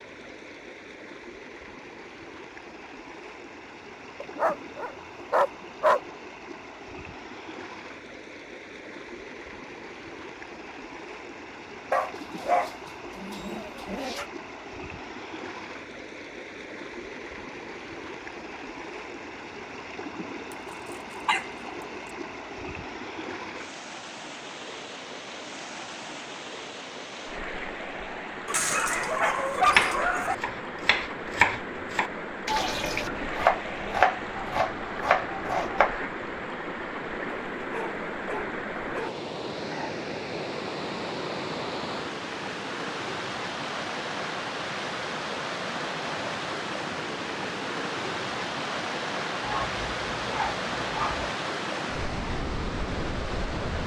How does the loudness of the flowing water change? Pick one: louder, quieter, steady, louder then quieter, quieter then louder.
louder.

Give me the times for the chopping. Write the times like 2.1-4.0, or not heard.
29.7-36.0.